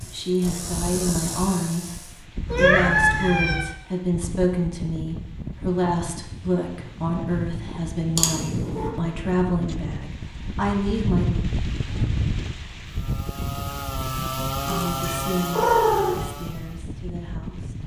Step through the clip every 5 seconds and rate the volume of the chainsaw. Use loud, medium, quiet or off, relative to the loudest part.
medium, off, loud, loud.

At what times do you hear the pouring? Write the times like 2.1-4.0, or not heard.
not heard.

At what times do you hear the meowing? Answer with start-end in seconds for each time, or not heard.
2.5-3.6, 8.2-8.9, 14.7-16.2.